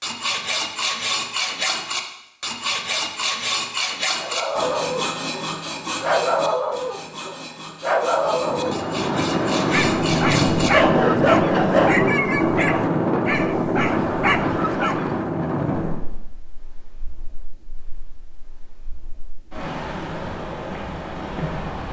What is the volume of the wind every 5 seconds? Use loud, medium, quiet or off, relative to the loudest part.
off, loud, loud, medium, medium.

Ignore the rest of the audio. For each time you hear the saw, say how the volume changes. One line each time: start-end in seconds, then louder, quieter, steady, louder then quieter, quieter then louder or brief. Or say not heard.
0.0-12.0 quieter then louder.